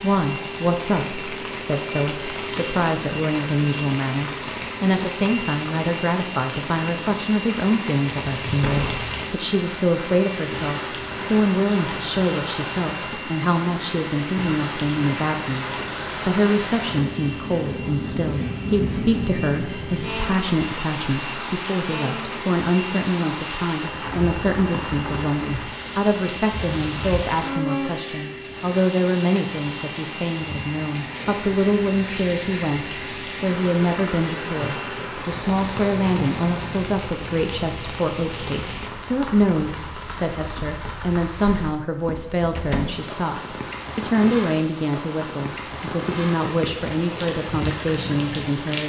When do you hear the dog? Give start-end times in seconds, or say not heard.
not heard.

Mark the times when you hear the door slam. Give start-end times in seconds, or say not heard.
8.6-9.1, 42.5-43.1.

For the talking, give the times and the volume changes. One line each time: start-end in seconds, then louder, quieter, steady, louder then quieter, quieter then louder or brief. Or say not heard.
0.0-48.8 steady.